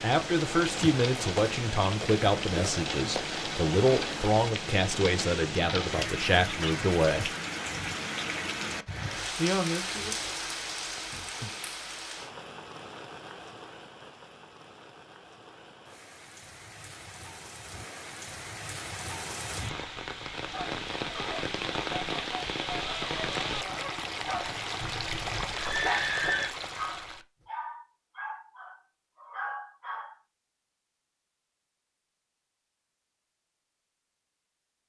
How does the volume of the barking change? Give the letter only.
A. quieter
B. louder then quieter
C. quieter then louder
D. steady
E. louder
D.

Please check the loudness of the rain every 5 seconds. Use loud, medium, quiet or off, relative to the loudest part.
loud, loud, medium, medium, loud, loud, off.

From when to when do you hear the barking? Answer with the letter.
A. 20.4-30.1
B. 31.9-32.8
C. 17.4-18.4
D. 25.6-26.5
A.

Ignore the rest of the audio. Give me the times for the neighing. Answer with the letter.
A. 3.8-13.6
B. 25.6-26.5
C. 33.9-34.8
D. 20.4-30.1
B.